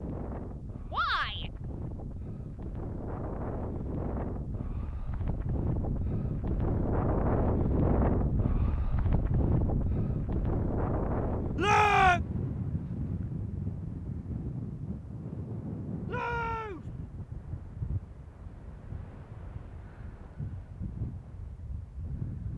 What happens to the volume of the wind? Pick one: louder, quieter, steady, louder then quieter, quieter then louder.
louder then quieter.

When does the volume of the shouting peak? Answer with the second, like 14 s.
12 s.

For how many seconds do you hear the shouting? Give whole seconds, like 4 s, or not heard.
2 s.